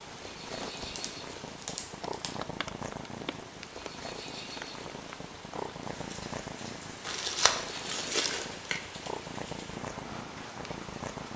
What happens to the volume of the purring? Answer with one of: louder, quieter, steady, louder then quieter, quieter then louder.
steady.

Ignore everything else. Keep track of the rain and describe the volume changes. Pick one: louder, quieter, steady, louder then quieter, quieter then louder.
steady.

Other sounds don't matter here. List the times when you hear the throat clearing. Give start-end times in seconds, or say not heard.
not heard.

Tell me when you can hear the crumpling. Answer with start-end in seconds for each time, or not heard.
0.9-2.4, 7.0-8.8.